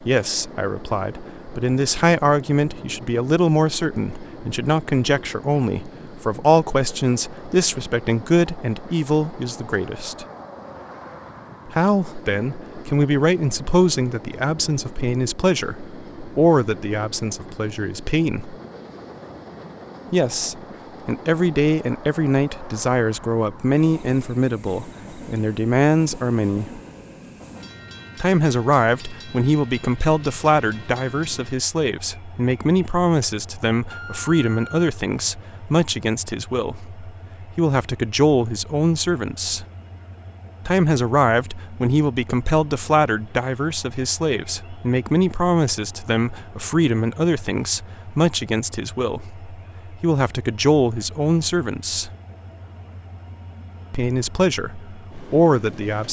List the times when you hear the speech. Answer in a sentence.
The speech can be heard from 0.1 to 10.2 s, from 11.7 to 18.6 s, from 20.1 to 26.8 s, from 28.2 to 39.6 s, from 40.6 to 52.1 s and from 53.9 to 56.0 s.